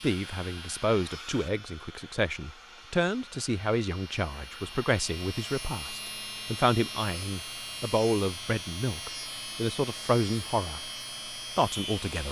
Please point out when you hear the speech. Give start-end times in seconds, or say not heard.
0.0-10.8, 11.6-12.2.